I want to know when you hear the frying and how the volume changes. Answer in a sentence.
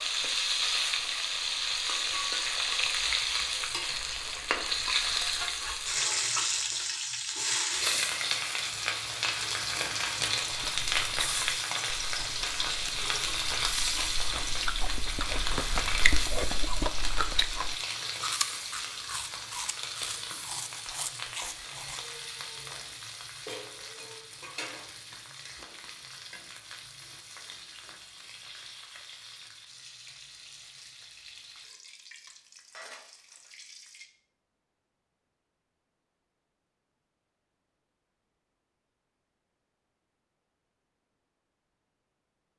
You can hear the frying from 0.0 to 34.0 s, getting quieter.